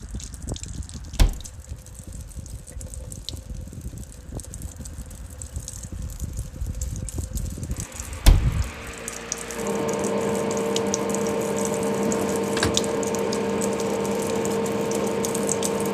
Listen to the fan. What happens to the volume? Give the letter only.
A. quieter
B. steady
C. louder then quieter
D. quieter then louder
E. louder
E.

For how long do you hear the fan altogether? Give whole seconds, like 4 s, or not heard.
16 s.